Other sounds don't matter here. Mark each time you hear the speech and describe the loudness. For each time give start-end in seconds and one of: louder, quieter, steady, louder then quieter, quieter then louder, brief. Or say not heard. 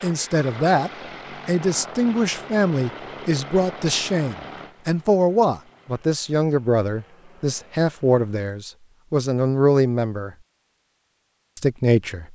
0.0-10.3 steady
11.6-12.2 brief.